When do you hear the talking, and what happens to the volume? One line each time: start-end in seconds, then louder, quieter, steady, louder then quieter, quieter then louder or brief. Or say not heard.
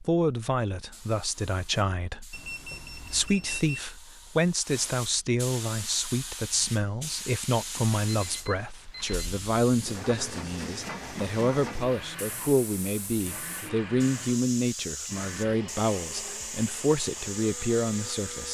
0.0-18.4 steady.